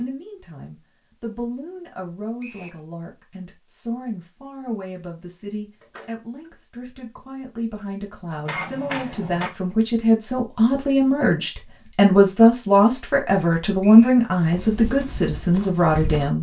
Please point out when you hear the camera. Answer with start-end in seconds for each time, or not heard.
5.8-6.5, 8.4-9.5.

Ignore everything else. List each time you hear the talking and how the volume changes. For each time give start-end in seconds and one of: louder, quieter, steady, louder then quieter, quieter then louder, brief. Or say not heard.
0.0-16.3 louder.